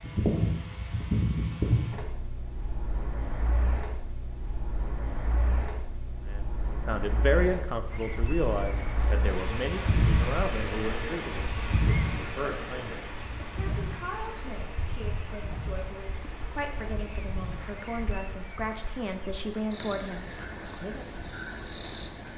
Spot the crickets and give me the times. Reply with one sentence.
You can hear the crickets from 7.8 to 22.3 s.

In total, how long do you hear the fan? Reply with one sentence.
You can hear the fan for 18 seconds altogether.